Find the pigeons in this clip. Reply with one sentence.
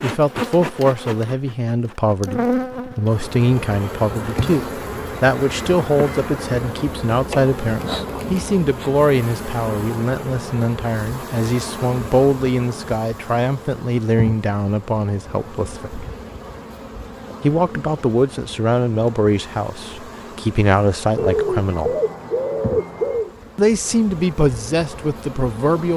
The pigeons can be heard from 21.1 to 23.3 s.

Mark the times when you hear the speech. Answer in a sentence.
You can hear the speech from 0.0 to 16.0 s, from 17.4 to 21.9 s and from 23.6 to 25.9 s.